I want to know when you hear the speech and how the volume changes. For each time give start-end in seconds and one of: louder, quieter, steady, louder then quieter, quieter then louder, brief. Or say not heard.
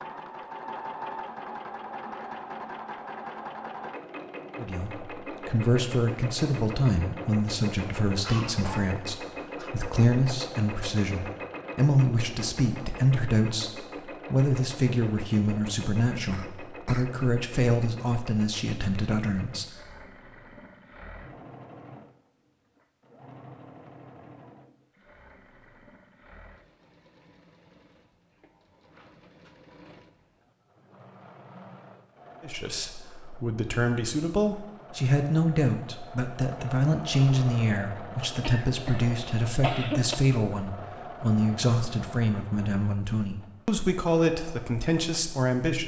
4.5-19.7 steady
32.4-45.8 steady.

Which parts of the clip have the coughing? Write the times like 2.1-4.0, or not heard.
8.2-9.8, 16.1-17.2, 38.4-40.1.